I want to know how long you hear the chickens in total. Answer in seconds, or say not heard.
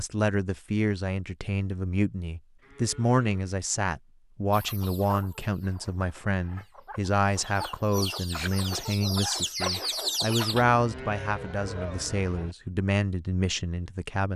6 s.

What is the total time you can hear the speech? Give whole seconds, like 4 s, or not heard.
14 s.